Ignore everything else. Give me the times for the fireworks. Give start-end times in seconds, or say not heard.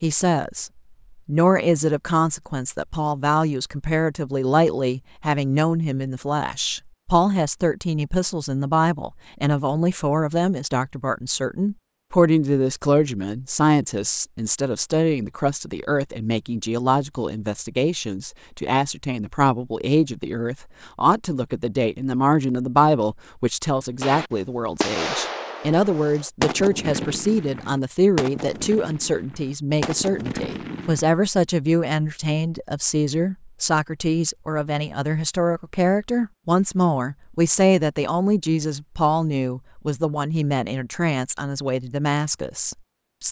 24.0-31.0.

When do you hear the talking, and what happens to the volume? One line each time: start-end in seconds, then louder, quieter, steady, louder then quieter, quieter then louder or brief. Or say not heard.
0.0-43.2 steady.